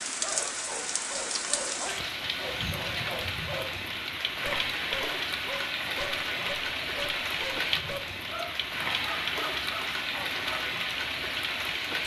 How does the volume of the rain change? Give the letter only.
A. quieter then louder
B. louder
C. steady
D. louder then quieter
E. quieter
C.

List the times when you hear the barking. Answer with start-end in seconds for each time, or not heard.
0.2-10.7.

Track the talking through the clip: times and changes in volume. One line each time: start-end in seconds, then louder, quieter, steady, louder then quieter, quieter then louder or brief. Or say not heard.
not heard.